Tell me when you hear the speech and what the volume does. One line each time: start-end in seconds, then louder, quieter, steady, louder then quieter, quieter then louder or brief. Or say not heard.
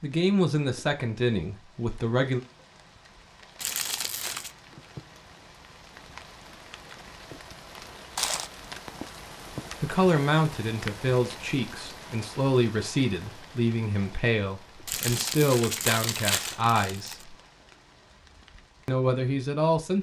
0.0-2.4 brief
9.8-17.4 steady
18.9-19.9 brief.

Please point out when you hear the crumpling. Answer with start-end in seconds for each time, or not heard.
3.6-4.5, 8.2-9.0, 14.8-17.2.